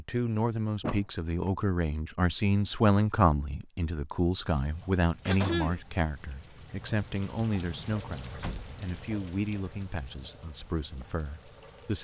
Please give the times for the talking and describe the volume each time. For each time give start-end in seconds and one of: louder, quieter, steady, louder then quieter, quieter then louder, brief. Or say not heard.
0.0-11.9 quieter.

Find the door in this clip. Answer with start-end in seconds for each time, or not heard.
0.8-1.6, 4.8-5.7, 8.3-8.8.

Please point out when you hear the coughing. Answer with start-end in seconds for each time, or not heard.
5.2-5.8.